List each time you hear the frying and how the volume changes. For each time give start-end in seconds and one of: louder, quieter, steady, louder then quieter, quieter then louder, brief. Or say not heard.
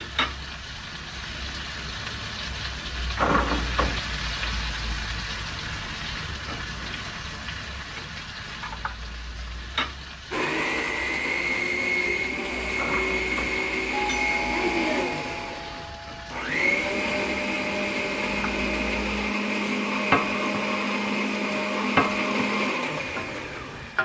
0.0-24.0 quieter then louder.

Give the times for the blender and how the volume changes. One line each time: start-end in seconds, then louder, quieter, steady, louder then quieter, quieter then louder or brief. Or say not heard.
10.3-24.0 steady.